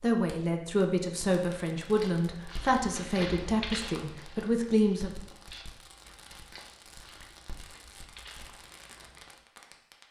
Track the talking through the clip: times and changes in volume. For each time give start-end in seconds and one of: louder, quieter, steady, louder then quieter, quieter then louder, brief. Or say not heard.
0.0-5.1 steady.